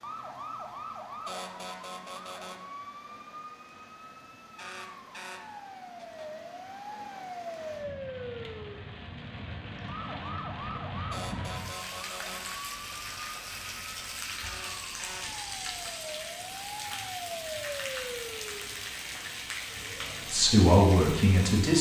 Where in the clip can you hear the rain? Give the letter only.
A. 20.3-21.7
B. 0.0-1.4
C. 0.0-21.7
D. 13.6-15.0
C.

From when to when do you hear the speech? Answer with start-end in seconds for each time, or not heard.
20.3-21.7.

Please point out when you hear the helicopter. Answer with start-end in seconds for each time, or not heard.
not heard.